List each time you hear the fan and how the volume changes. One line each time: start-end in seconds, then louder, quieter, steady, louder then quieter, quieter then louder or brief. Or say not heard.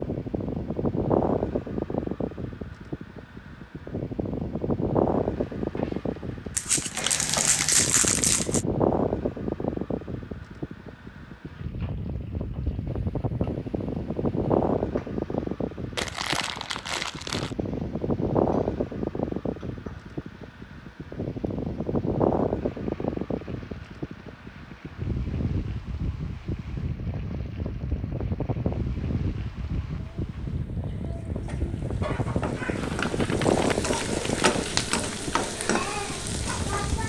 0.0-37.0 steady.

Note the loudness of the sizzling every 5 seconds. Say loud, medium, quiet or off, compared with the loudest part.
off, medium, quiet, quiet, quiet, quiet, loud, loud.